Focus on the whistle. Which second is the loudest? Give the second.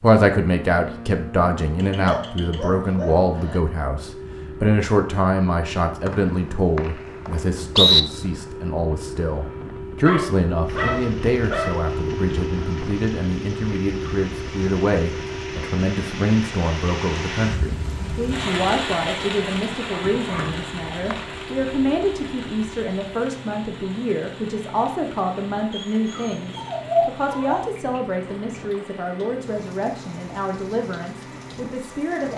8 s.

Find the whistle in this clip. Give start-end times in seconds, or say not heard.
6.0-8.0, 20.4-21.2.